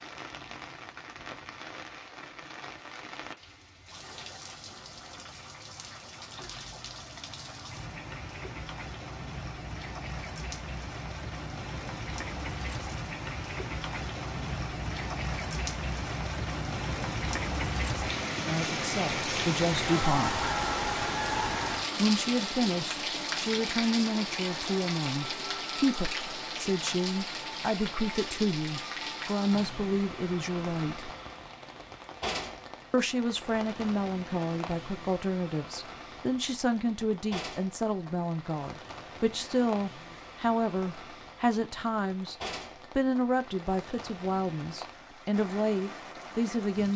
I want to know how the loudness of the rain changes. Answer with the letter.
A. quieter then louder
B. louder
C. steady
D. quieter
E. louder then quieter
E.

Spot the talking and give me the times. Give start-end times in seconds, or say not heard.
18.4-20.4, 21.9-31.1, 32.9-42.4, 43.0-46.9.